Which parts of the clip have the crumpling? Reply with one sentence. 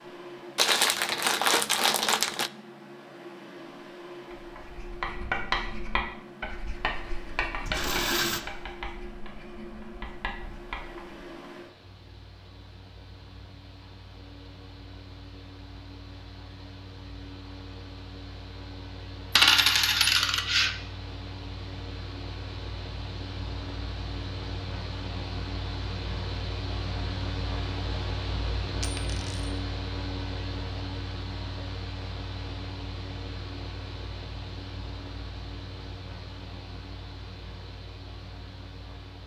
The crumpling can be heard from 0.6 to 2.5 s.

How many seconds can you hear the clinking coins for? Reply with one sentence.
The clinking coins can be heard for 3 seconds in total.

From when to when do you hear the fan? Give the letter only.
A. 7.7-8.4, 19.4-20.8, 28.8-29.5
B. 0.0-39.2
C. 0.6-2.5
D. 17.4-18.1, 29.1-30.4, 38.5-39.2
B.